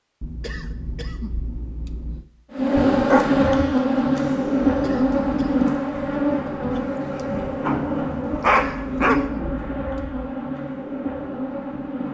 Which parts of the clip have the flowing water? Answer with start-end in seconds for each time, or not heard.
not heard.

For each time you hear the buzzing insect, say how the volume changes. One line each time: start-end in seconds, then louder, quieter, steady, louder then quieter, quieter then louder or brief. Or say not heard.
2.5-12.1 quieter.